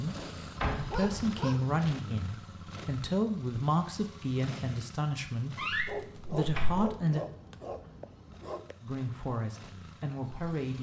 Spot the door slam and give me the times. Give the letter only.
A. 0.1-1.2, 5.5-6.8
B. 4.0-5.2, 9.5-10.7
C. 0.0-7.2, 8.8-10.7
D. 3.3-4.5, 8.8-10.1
A.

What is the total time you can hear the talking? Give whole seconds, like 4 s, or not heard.
9 s.